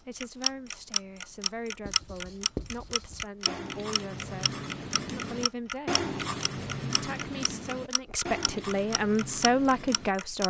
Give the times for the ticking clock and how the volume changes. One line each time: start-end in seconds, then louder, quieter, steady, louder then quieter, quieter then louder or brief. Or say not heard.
0.2-10.4 quieter.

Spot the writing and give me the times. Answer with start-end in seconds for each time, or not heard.
1.8-10.2.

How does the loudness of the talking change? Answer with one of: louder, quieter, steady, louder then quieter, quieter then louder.
louder.